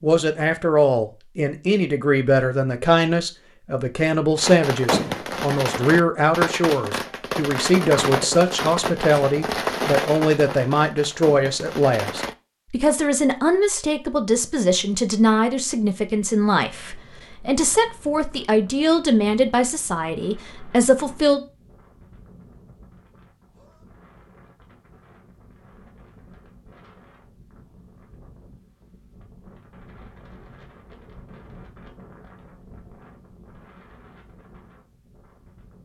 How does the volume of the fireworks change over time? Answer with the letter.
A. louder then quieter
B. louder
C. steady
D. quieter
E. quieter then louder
D.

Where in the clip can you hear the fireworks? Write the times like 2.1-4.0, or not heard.
4.3-12.3.